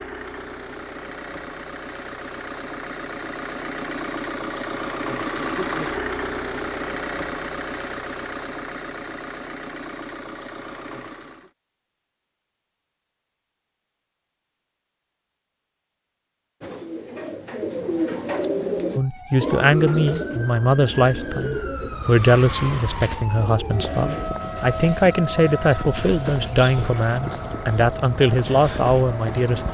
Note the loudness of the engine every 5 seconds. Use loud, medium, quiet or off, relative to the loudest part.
loud, loud, medium, off, medium, medium.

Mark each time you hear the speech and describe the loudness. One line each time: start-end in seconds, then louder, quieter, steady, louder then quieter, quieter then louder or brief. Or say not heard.
18.9-29.6 steady.